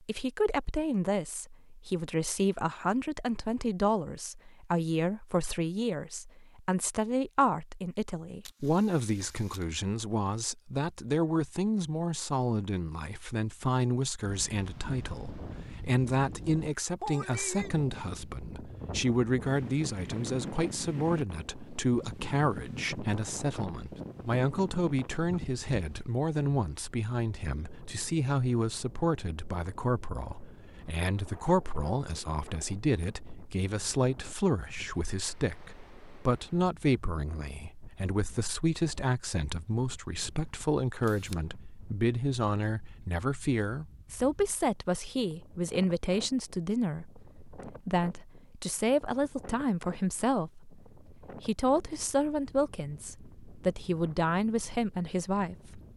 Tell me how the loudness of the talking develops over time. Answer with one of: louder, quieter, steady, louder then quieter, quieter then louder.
steady.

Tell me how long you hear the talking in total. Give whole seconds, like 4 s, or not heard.
56 s.